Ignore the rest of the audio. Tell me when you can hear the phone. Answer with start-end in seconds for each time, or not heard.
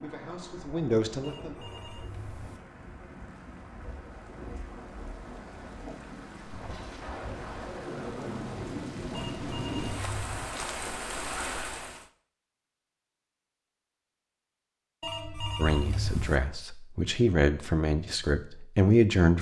1.2-2.6, 9.1-10.5, 15.0-16.4.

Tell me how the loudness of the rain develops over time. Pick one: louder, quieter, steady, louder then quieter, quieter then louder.
louder.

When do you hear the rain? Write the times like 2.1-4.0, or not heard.
0.0-12.1.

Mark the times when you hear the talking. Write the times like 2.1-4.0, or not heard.
0.0-1.6, 15.6-19.3.